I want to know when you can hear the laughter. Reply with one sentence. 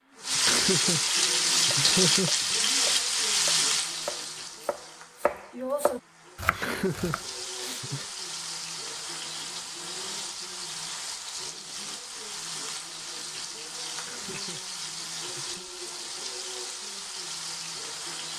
You can hear the laughter from 0.3 to 2.5 s, from 6.5 to 8.1 s and from 13.9 to 15.7 s.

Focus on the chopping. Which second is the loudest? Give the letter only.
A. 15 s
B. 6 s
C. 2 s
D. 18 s
B.